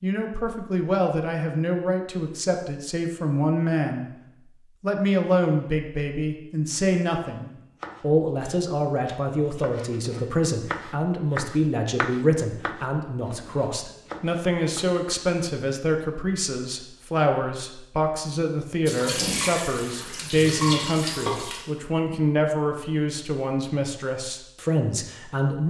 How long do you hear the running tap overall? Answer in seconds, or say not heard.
3 s.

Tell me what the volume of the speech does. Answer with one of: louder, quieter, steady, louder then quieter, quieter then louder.
steady.